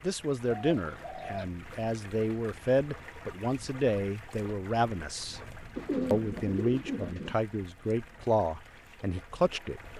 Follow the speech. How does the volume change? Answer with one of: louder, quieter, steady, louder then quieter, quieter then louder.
steady.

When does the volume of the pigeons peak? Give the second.
6 s.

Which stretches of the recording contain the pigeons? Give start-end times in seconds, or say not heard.
0.5-1.4, 5.8-7.3.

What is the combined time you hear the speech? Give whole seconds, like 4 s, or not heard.
9 s.